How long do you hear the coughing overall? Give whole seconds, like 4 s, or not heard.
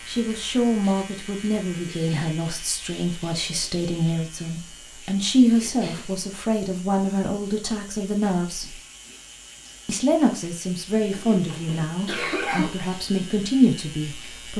2 s.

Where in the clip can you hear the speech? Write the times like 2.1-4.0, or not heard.
0.1-8.8, 9.8-14.5.